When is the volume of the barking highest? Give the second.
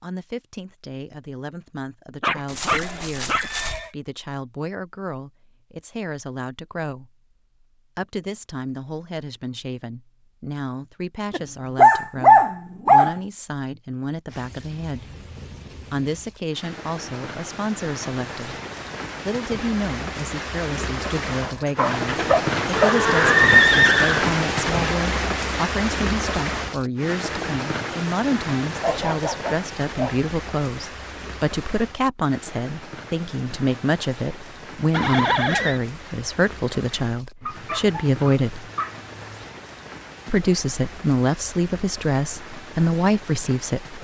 12 s.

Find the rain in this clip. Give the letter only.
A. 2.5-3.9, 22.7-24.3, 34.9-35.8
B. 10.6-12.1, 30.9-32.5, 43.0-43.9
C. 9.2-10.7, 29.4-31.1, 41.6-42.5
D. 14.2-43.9
D.